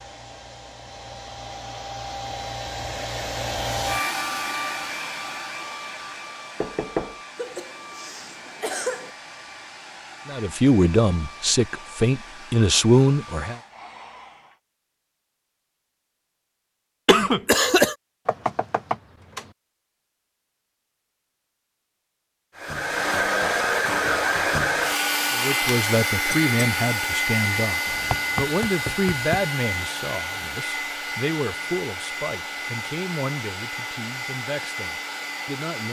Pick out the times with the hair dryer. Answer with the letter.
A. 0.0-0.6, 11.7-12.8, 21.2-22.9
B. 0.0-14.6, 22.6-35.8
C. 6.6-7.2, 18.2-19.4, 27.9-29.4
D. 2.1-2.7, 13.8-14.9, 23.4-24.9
B.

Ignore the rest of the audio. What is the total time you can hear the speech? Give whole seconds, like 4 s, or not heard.
14 s.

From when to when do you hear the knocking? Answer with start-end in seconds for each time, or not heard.
6.6-7.2, 18.2-19.4, 27.9-29.4.